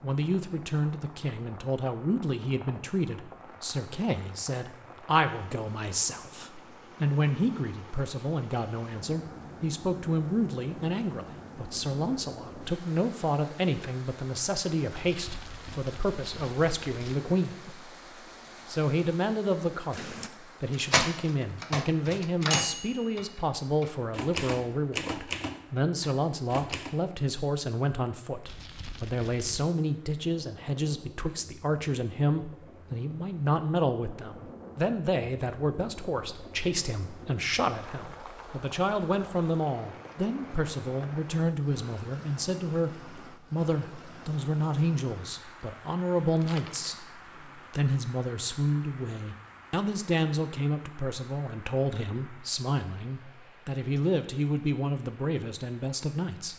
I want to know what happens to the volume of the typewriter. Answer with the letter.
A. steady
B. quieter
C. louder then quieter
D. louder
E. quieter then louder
E.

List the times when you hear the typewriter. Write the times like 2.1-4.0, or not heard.
19.9-26.9.